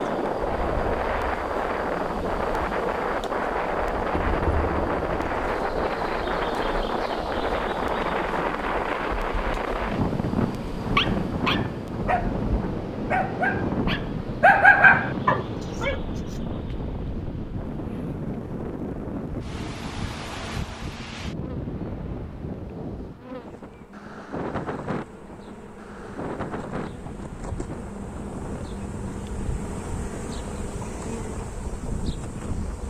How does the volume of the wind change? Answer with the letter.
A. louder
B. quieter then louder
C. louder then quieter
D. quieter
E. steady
D.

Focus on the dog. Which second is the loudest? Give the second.
15 s.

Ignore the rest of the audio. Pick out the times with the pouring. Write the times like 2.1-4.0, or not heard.
4.1-5.3.